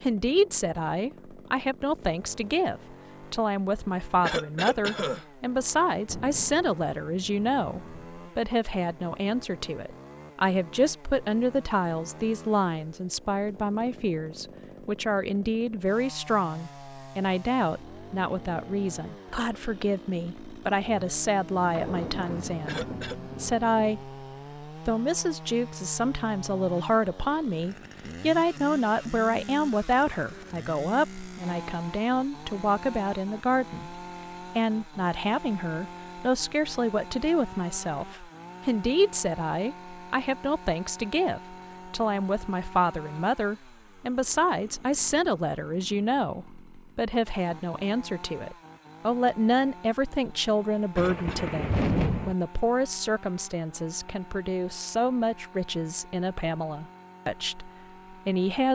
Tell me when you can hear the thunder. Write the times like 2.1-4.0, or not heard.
6.0-8.1, 21.6-24.1, 51.0-52.4.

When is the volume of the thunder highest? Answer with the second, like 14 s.
52 s.